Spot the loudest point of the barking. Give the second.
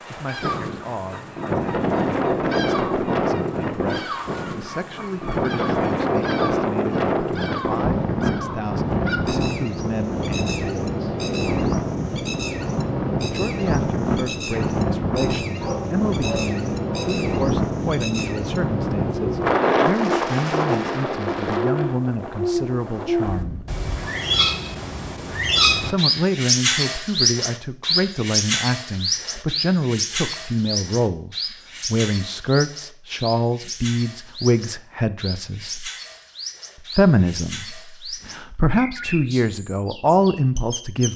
16 s.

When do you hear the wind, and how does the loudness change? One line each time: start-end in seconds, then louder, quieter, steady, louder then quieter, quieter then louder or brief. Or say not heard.
0.0-23.7 steady.